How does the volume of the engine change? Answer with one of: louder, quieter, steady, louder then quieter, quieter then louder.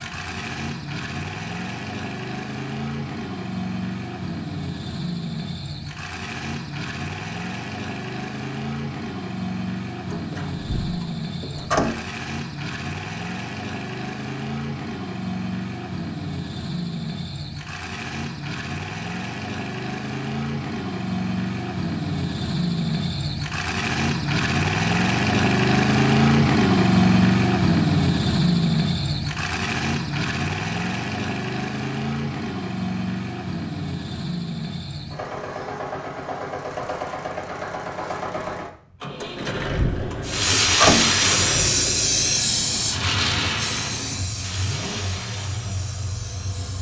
louder then quieter.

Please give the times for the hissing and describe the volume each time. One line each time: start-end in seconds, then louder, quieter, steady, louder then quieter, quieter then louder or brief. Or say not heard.
40.2-46.7 quieter.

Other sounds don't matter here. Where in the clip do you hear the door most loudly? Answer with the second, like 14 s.
41 s.